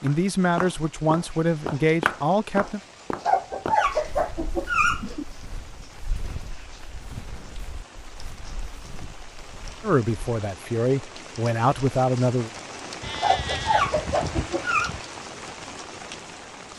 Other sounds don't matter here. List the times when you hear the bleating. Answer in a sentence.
The bleating can be heard from 13.0 to 15.0 s.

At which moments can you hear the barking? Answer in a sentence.
The barking can be heard from 3.2 to 5.2 s and from 13.2 to 14.9 s.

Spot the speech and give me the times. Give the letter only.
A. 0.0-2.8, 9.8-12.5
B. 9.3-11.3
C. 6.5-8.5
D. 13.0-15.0
A.